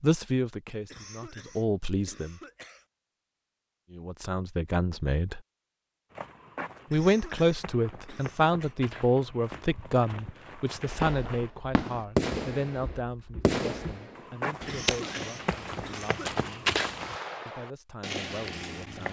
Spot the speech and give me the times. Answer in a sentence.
You can hear the speech from 0.0 to 2.4 s, from 3.9 to 5.4 s, from 6.9 to 16.7 s and from 17.4 to 19.0 s.